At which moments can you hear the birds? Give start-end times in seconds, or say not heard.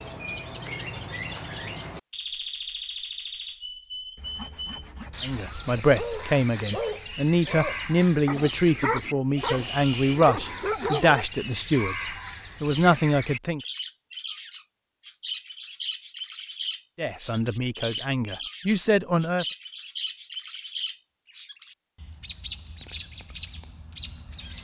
0.0-24.5.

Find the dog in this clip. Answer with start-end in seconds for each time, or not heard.
6.0-11.2.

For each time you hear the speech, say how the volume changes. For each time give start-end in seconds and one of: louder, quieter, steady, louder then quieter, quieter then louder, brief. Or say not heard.
5.2-13.6 steady
16.9-19.4 brief.